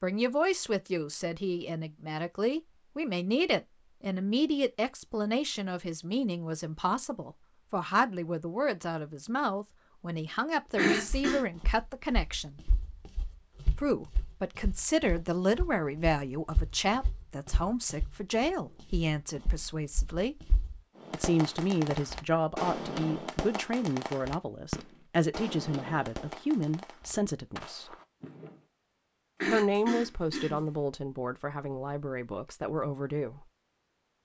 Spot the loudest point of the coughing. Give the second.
11 s.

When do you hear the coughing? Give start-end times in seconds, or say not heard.
10.8-11.4, 29.4-30.6.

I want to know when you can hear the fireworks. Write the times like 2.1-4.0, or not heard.
20.9-28.6.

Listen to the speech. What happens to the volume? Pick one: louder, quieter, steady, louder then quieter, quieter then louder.
steady.